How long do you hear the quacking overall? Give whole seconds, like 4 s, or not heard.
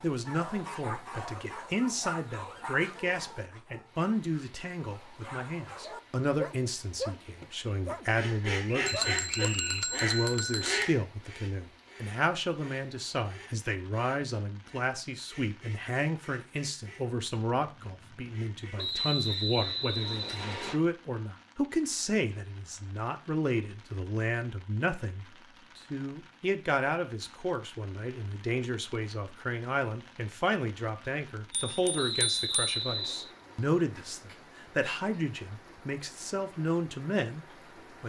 12 s.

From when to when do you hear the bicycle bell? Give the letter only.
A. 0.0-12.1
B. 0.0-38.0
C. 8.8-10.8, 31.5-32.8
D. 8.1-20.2
C.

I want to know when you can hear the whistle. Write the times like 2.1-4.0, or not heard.
8.8-9.8, 18.8-20.8, 31.9-33.3.